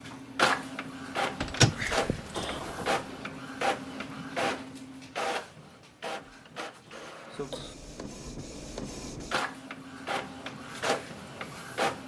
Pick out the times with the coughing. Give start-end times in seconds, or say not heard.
2.3-3.0, 6.8-7.8.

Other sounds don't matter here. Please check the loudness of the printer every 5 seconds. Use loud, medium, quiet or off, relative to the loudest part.
loud, medium, loud.